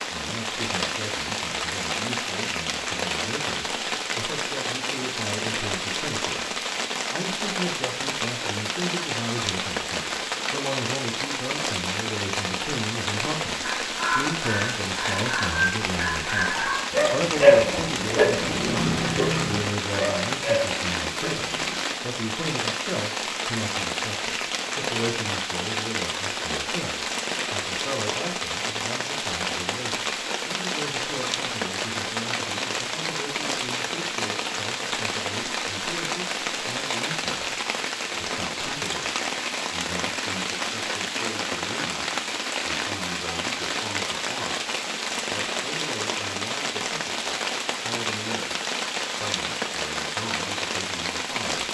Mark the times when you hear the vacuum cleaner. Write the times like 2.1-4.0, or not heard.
not heard.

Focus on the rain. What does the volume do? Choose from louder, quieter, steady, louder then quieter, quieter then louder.
steady.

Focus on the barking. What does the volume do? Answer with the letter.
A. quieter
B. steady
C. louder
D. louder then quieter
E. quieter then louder
D.